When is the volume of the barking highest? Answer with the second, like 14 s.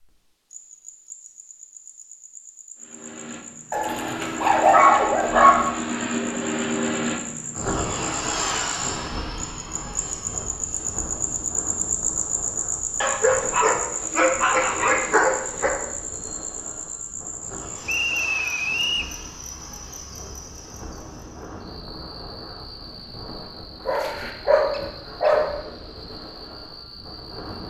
5 s.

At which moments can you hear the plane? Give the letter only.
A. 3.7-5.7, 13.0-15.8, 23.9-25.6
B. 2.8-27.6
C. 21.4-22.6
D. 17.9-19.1
B.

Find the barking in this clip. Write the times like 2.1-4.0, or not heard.
3.7-5.7, 13.0-15.8, 23.9-25.6.